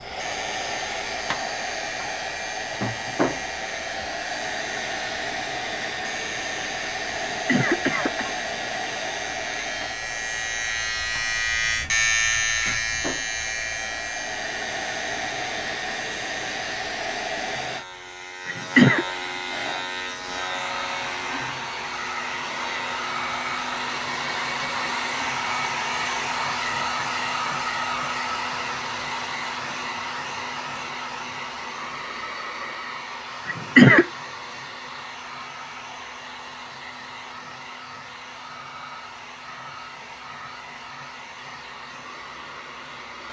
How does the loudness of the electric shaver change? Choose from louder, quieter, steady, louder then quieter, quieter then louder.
louder then quieter.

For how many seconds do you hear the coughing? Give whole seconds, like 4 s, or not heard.
2 s.